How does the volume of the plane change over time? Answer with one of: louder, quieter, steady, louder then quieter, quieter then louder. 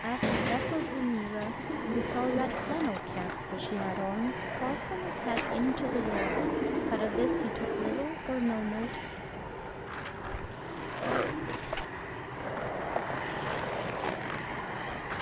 steady.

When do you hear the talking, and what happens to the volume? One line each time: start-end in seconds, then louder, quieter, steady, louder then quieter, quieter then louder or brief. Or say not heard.
0.0-9.0 steady.